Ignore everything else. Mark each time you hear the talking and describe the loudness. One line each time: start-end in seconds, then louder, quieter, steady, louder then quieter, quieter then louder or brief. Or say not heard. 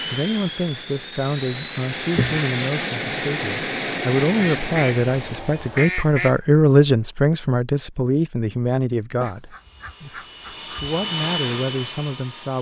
0.1-12.5 louder then quieter.